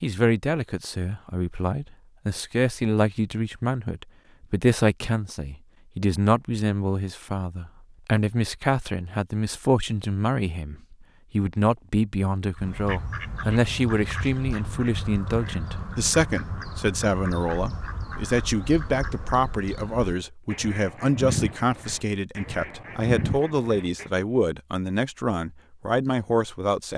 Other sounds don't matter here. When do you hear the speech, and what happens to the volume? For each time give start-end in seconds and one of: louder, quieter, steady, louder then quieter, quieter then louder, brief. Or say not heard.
0.0-26.9 steady.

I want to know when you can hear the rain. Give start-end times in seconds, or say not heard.
not heard.